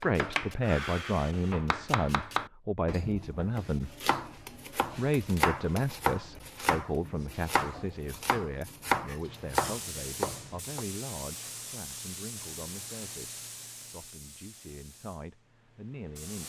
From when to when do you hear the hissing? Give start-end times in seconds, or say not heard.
9.2-16.4.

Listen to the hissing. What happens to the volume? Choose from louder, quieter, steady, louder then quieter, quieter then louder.
quieter.